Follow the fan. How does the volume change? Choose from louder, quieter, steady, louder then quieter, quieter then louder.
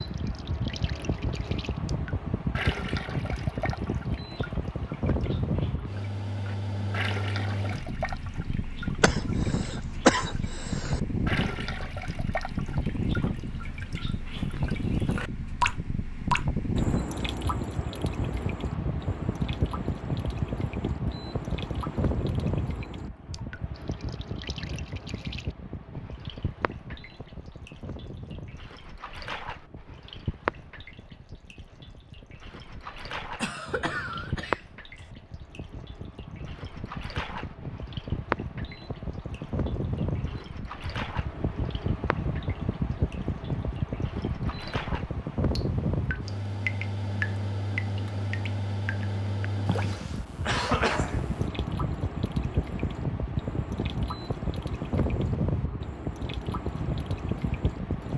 quieter then louder.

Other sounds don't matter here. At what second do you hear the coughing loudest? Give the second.
10 s.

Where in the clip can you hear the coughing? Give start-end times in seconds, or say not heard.
9.0-11.0, 33.4-35.0, 49.6-51.5.